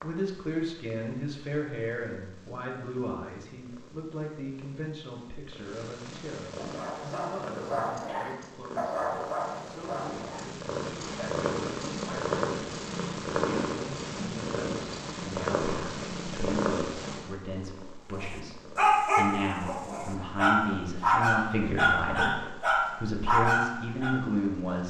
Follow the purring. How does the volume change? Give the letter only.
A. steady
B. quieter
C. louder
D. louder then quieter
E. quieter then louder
D.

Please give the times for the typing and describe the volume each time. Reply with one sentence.
You can't hear the typing here.